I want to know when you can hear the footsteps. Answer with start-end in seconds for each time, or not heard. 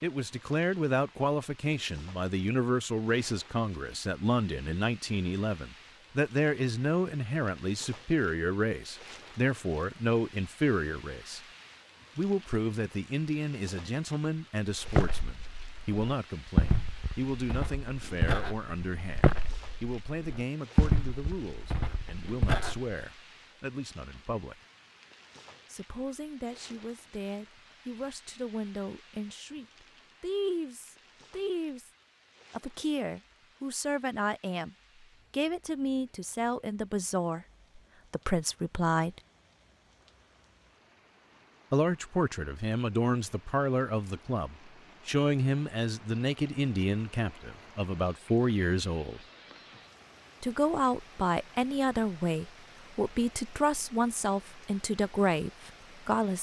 14.8-22.9.